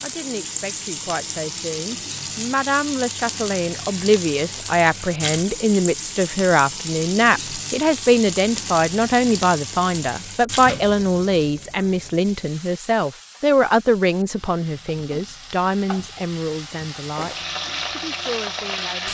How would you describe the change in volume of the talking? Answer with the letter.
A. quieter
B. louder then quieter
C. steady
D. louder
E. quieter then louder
B.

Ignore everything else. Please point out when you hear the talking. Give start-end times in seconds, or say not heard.
0.0-19.0.